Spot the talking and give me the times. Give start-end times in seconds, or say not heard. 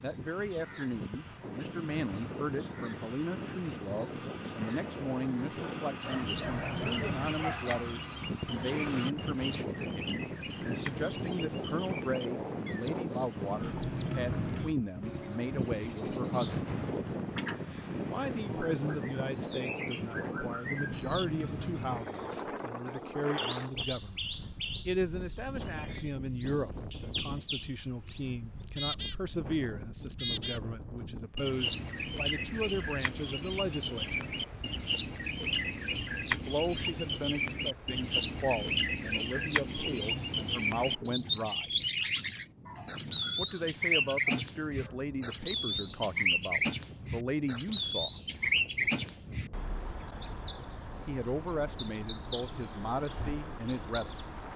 0.0-16.6, 18.1-24.2, 24.9-34.2, 36.3-41.7, 43.4-48.2, 51.0-54.2.